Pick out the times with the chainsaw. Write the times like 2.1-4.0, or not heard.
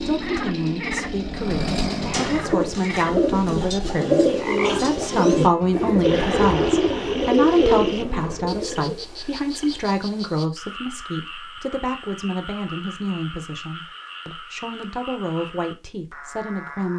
0.0-2.4.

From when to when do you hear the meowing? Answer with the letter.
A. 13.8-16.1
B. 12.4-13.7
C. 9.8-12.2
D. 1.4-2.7
D.